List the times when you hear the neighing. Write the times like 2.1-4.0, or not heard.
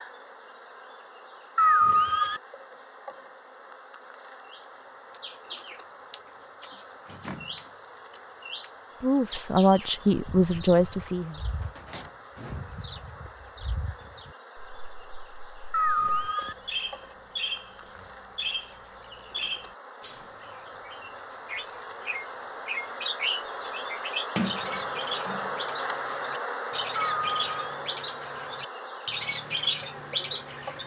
1.6-2.4, 15.7-16.6, 26.9-27.8.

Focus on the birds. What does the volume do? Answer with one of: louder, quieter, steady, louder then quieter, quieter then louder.
quieter then louder.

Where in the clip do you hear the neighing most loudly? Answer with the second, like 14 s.
2 s.